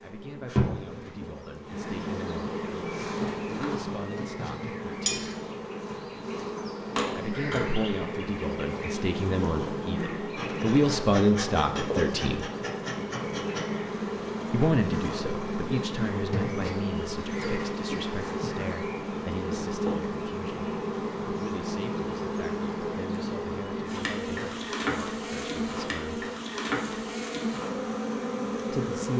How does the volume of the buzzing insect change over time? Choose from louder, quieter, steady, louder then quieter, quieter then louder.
steady.